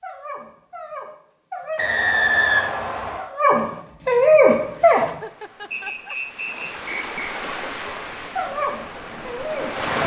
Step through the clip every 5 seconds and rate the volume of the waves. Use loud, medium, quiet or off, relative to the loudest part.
off, loud.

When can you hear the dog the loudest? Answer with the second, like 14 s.
4 s.